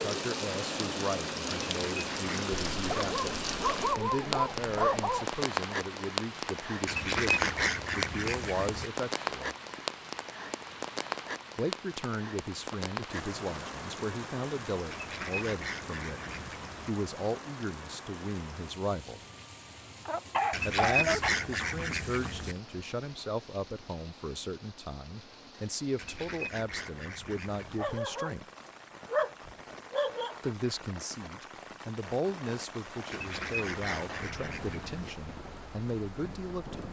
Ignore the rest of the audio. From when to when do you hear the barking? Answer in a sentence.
You can hear the barking from 2.8 to 5.3 s, from 20.1 to 21.5 s, from 27.8 to 28.4 s and from 29.1 to 30.4 s.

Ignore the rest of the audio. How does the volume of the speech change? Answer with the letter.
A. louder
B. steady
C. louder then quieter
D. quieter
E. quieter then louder
B.